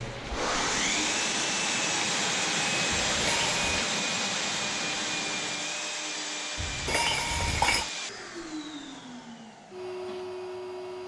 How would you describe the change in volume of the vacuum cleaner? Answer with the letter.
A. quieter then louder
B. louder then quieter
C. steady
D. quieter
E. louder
D.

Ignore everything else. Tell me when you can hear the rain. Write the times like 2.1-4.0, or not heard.
0.0-5.8.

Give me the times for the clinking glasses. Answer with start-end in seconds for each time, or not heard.
3.0-3.8, 6.5-7.9.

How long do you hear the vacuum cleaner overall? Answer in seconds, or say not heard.
11 s.